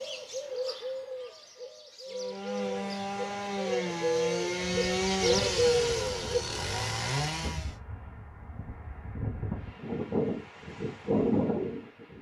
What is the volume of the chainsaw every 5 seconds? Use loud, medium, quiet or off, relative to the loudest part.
loud, loud, off.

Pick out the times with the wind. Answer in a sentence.
You can hear the wind from 4.6 to 12.1 s.